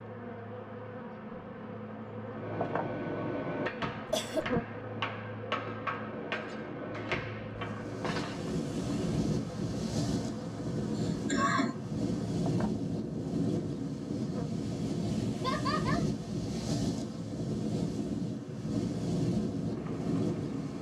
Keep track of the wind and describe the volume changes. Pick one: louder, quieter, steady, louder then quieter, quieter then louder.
steady.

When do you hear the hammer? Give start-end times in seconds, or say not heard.
2.3-8.6.